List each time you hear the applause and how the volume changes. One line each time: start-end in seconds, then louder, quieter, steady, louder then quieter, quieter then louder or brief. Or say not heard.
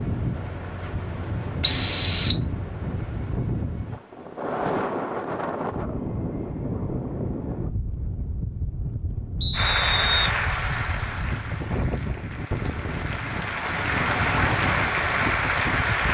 9.5-16.0 quieter then louder.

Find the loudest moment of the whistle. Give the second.
2 s.